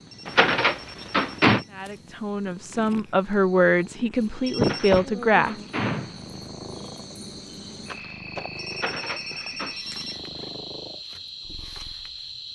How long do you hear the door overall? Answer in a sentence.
The door can be heard for 4 seconds in total.